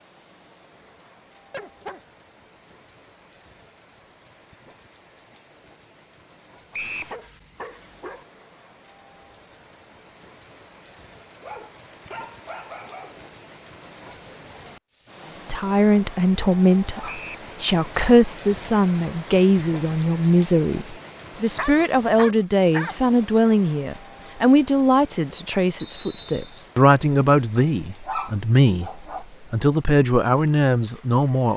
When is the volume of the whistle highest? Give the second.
7 s.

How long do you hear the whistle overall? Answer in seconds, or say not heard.
2 s.